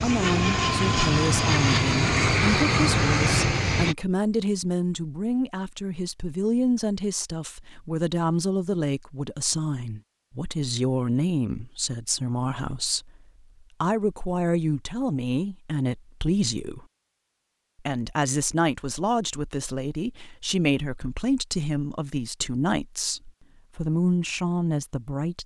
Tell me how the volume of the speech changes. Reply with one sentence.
The loudness of the speech stays about the same.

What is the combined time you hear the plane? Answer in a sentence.
The plane can be heard for 4 seconds in total.